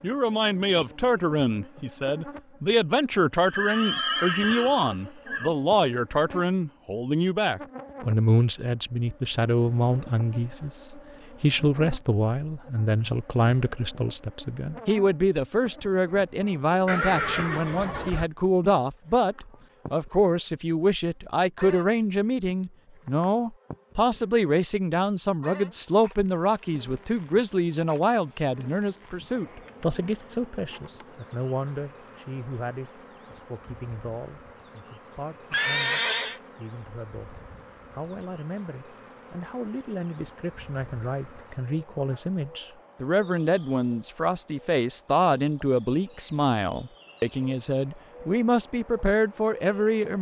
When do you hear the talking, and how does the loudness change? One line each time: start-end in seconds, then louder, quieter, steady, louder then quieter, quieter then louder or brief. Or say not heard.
0.0-50.1 quieter then louder.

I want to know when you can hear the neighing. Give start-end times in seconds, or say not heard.
3.0-5.5, 16.9-18.2, 35.5-36.4.